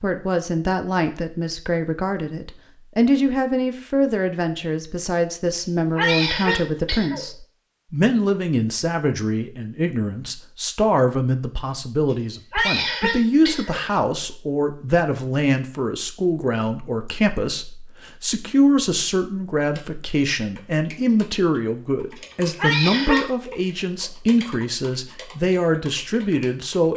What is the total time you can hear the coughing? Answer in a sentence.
The coughing can be heard for 3 seconds in total.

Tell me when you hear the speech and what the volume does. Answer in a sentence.
The speech can be heard from 0.0 to 26.9 s, at a steady volume.